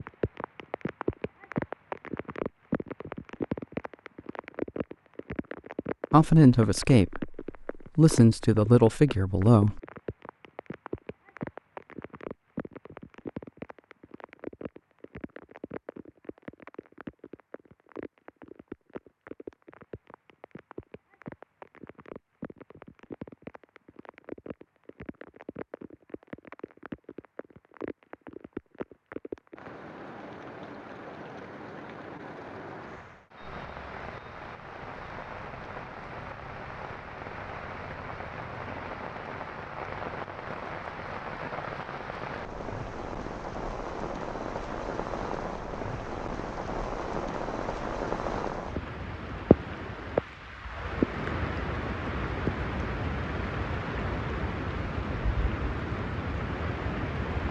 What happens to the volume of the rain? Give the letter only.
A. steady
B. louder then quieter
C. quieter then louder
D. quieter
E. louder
C.